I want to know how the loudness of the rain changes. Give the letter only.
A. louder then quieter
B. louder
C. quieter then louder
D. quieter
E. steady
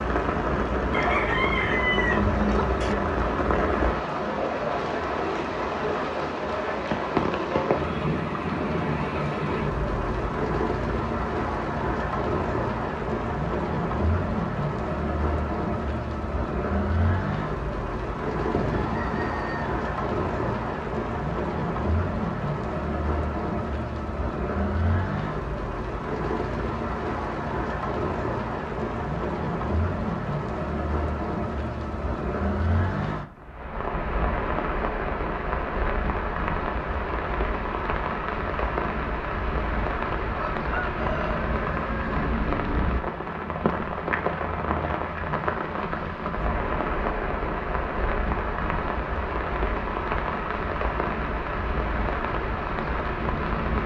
E.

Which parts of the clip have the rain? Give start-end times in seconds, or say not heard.
0.0-53.8.